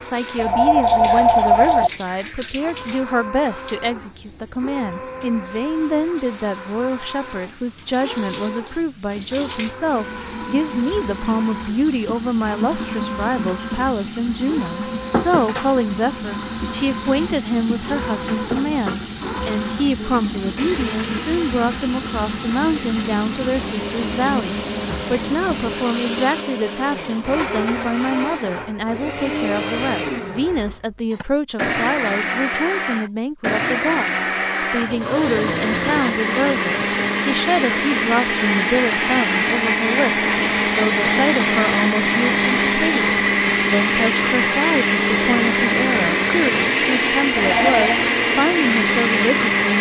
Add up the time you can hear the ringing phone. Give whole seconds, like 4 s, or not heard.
2 s.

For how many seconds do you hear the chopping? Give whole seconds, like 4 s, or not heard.
not heard.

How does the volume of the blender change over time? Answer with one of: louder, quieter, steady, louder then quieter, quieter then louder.
louder.